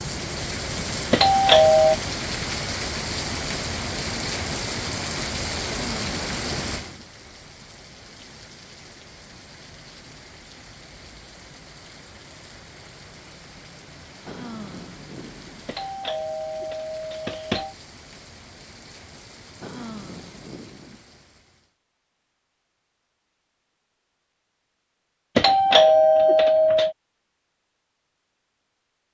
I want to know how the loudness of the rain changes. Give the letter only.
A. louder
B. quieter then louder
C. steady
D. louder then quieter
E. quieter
E.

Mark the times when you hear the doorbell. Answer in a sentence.
The doorbell can be heard from 1.1 to 1.9 s, from 15.7 to 17.8 s and from 25.4 to 26.9 s.